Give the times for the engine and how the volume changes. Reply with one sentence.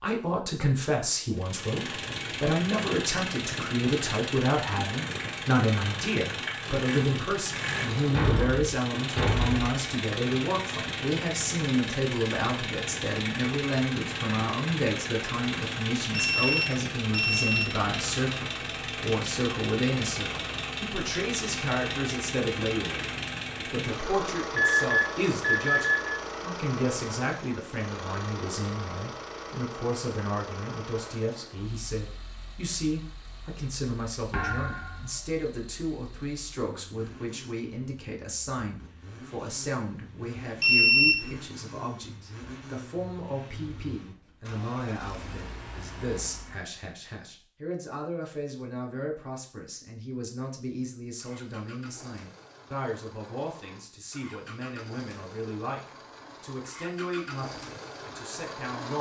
The engine can be heard from 1.3 to 46.8 s, getting quieter; and from 51.0 to 58.9 s, getting louder.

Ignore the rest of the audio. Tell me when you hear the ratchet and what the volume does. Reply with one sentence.
The ratchet can't be heard in this clip.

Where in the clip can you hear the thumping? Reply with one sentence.
You can hear the thumping from 8.1 to 9.7 s and from 34.3 to 35.1 s.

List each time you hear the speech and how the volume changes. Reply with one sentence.
The speech can be heard from 0.0 to 58.9 s, getting quieter.